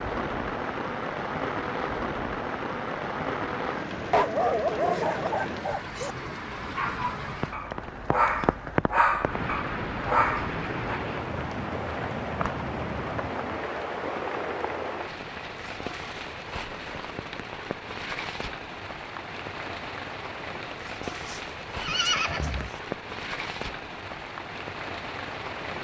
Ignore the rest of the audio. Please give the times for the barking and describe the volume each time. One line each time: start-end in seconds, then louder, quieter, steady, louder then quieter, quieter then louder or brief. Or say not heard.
4.1-11.0 quieter then louder.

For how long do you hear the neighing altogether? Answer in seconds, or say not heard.
2 s.